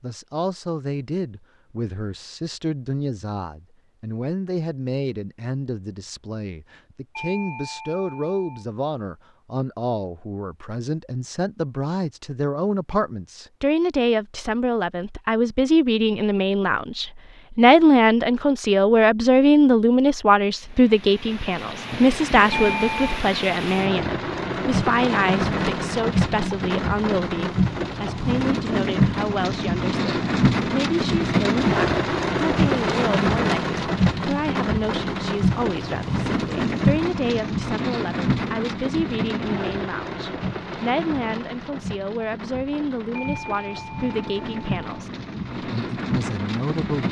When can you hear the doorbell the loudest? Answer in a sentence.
The volume of the doorbell peaks at 23 seconds.